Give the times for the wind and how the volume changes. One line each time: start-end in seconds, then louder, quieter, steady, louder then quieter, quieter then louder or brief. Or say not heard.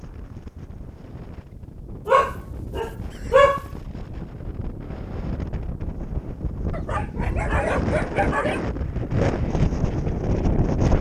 0.0-10.9 louder.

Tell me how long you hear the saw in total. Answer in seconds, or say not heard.
not heard.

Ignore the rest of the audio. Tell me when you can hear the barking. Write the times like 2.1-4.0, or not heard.
2.0-3.6, 6.7-8.6.